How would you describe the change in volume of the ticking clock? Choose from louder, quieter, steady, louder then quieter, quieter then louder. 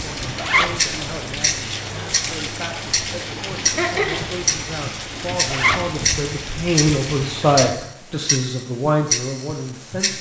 steady.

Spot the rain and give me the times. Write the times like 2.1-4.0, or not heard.
0.0-7.8.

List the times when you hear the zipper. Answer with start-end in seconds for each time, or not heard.
0.3-0.8, 5.5-6.0.